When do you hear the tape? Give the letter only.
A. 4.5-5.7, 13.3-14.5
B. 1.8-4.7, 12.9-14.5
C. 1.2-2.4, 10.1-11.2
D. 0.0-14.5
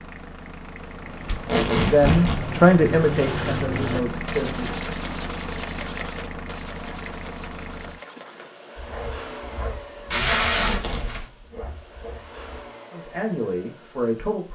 C.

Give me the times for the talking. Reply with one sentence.
The talking can be heard from 1.8 to 4.7 s and from 12.9 to 14.5 s.